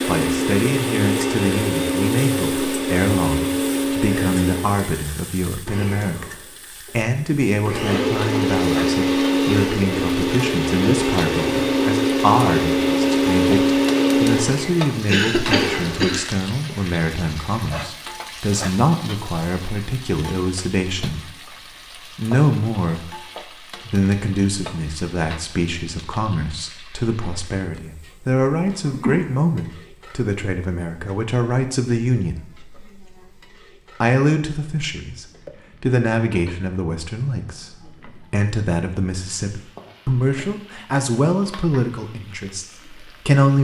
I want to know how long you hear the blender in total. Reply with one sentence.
The blender can be heard for 17 seconds in total.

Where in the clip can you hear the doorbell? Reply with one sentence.
The doorbell can't be heard in this clip.